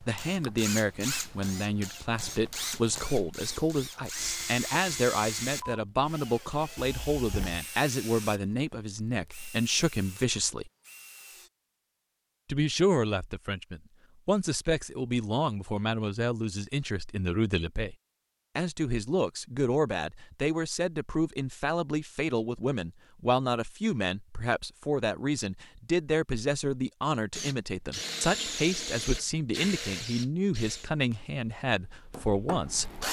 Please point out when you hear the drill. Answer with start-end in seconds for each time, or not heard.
0.0-11.5, 27.3-33.0.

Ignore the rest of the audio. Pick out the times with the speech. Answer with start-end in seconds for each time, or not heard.
0.0-10.7, 12.4-17.9, 18.6-33.0.